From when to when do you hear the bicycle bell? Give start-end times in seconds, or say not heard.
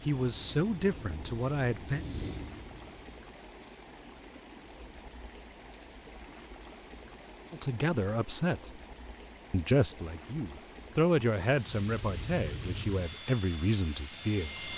not heard.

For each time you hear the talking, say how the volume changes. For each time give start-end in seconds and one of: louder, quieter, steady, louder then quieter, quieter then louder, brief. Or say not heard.
0.1-2.0 brief
7.5-8.8 brief
9.5-14.6 louder then quieter.